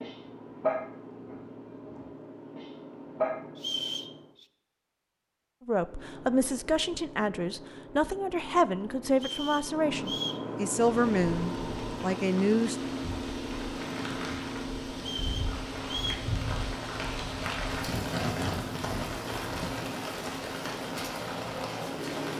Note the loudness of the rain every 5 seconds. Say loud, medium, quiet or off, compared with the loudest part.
off, off, medium, loud, loud.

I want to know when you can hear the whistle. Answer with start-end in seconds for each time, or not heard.
3.5-4.5, 9.2-10.4, 14.9-16.3.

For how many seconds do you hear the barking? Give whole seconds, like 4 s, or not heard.
3 s.